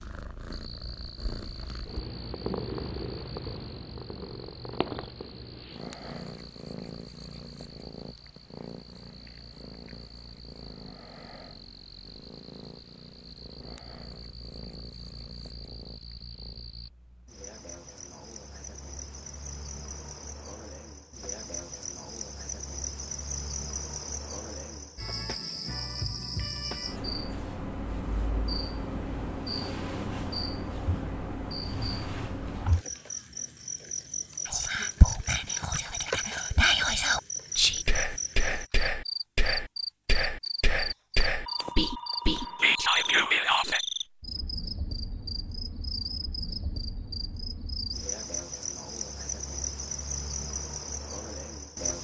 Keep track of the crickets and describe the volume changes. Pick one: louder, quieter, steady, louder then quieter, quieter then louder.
louder.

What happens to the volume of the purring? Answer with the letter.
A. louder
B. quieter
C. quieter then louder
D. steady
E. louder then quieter
B.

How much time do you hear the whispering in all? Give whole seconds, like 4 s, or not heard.
9 s.